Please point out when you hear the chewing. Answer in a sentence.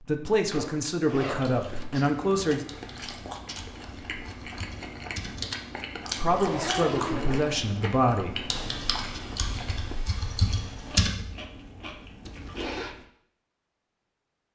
The chewing can be heard from 1.3 to 13.1 s.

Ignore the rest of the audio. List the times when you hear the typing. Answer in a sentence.
You can hear the typing from 2.6 to 5.5 s and from 8.5 to 11.2 s.